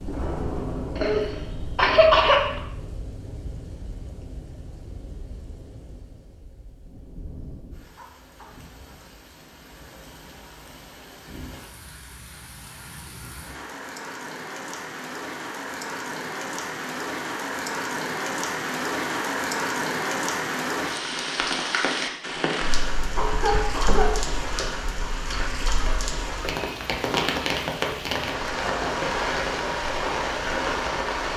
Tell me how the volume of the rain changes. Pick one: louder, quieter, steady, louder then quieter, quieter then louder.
quieter then louder.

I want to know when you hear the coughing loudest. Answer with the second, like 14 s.
2 s.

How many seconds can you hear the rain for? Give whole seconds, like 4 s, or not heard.
31 s.